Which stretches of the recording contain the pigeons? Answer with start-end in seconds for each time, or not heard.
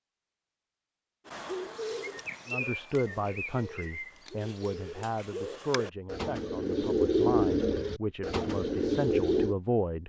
1.2-9.6.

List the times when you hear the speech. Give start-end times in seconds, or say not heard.
2.5-10.0.